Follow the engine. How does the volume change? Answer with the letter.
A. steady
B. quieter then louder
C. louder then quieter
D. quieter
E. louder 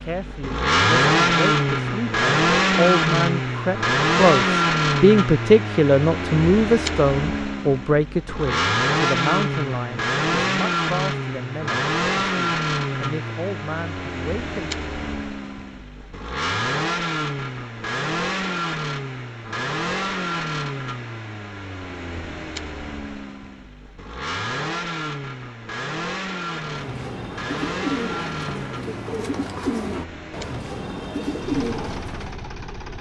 D.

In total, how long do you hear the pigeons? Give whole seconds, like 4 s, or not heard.
6 s.